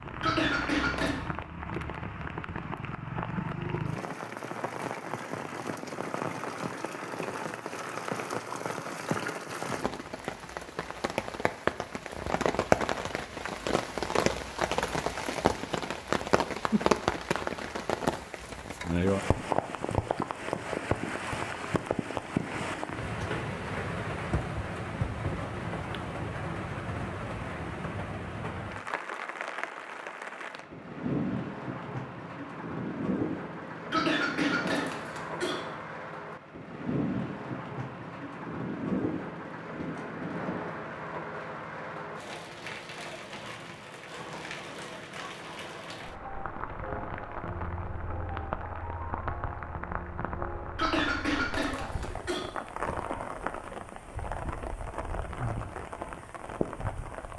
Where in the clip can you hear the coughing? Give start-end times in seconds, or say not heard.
0.2-1.1, 33.9-35.6, 50.8-52.5.